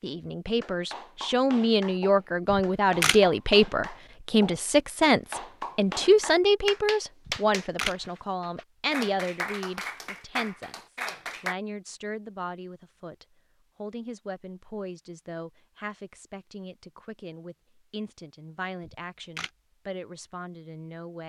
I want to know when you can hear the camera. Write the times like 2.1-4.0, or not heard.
2.5-3.2, 7.2-8.0, 18.8-19.5.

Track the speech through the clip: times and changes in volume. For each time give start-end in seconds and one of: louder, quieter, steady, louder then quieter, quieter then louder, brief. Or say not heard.
0.0-21.2 quieter.